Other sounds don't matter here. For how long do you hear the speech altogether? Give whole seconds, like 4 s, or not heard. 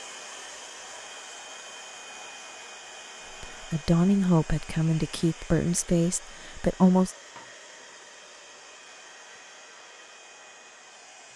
4 s.